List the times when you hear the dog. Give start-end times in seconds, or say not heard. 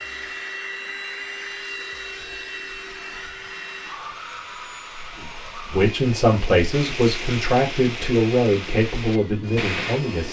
not heard.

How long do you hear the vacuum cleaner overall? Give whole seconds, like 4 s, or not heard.
10 s.